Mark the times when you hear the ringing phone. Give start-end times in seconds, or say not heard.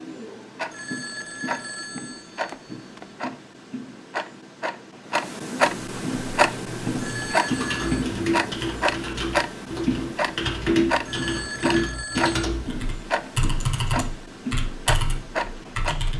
0.7-3.1, 7.0-8.1, 11.1-12.4.